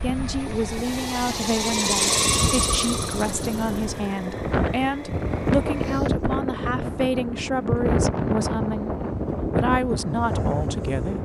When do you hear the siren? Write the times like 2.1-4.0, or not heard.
not heard.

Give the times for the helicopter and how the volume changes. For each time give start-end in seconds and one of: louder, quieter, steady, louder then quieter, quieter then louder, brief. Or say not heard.
0.0-11.2 quieter.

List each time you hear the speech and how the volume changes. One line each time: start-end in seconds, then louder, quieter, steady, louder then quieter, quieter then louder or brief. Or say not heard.
0.0-8.9 steady
9.6-11.2 brief.